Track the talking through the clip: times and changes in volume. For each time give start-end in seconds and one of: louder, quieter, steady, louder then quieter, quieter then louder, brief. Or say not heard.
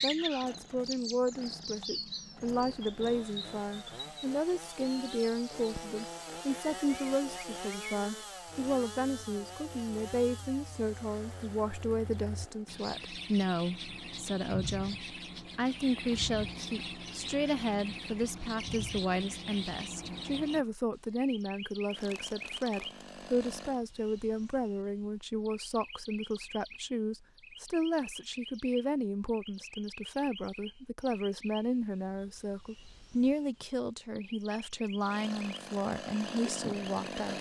0.0-37.3 steady.